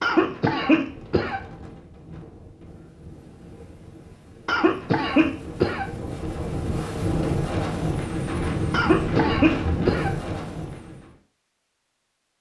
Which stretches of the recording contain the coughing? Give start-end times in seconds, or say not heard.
0.0-1.4, 4.5-5.8, 8.7-10.2.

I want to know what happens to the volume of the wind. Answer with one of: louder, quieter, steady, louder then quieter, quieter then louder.
louder.